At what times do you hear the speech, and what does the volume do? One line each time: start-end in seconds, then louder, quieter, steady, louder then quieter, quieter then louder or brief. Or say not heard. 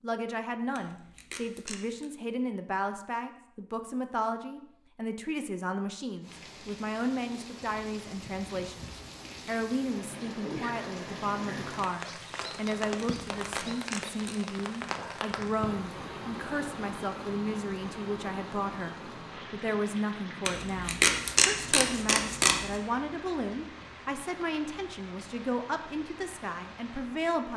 0.0-27.5 steady.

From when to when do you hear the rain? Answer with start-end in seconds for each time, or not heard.
6.2-27.5.